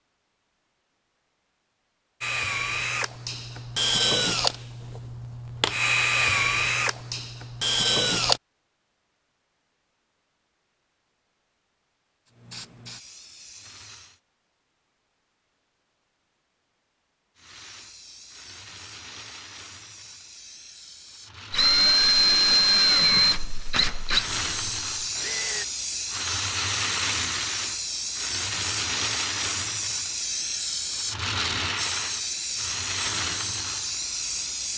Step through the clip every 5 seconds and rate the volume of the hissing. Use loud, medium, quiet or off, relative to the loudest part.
off, off, quiet, quiet, medium, loud, loud.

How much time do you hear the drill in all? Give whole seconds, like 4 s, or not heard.
10 s.